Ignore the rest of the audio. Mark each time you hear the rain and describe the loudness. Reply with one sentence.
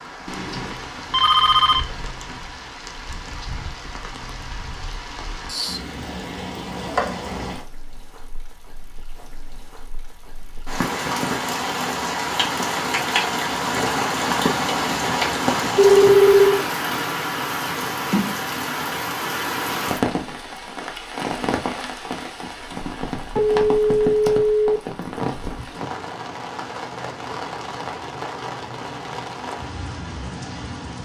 You can hear the rain from 0.0 to 31.0 s, getting louder then quieter.